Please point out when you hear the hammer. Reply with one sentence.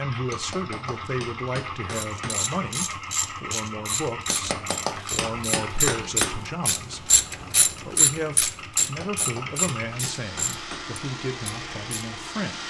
The hammer can be heard from 0.2 to 2.5 s, from 4.2 to 6.5 s and from 8.8 to 10.9 s.